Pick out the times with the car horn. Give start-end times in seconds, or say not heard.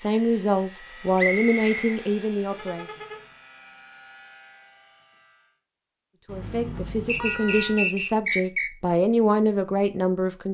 2.5-3.3, 6.2-7.9.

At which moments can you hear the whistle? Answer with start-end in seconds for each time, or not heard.
1.1-2.0, 7.0-8.7.